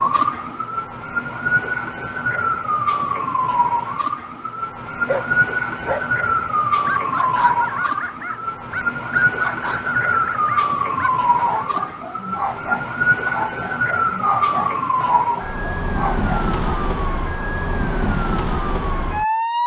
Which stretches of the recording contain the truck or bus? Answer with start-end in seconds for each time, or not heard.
not heard.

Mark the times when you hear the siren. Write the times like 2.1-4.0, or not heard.
0.0-19.6.